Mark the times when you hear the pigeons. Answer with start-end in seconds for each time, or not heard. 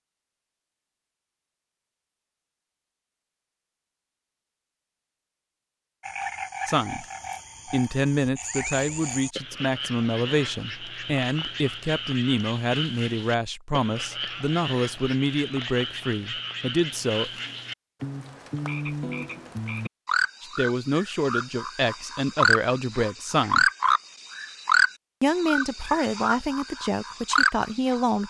not heard.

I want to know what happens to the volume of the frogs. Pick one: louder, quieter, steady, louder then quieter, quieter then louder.
louder.